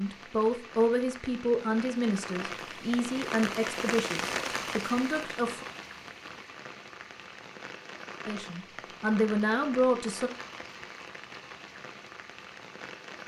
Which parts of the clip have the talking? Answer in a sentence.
You can hear the talking from 0.0 to 5.7 s and from 8.2 to 10.3 s.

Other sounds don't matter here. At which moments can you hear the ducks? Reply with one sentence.
The ducks can't be heard in this clip.